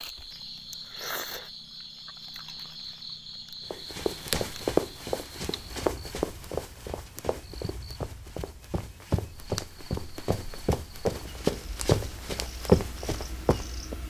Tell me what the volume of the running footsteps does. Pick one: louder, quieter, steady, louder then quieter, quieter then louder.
quieter then louder.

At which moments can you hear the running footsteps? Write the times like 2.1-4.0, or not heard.
3.7-13.9.